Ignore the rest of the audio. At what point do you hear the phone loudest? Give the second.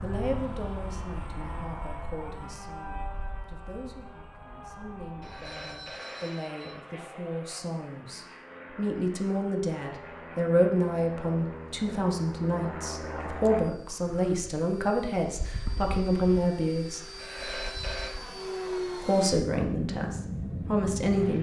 18 s.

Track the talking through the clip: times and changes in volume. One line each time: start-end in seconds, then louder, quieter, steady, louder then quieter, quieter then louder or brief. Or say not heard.
0.0-17.1 louder
19.0-21.3 brief.